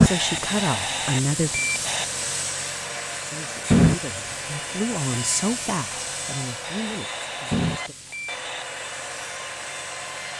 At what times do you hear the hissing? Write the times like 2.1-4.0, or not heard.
0.0-10.3.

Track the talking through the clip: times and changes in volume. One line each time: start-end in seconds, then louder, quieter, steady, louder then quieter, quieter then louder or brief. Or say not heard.
0.0-1.6 brief
3.2-8.0 louder then quieter.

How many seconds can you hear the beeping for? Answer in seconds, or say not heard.
4 s.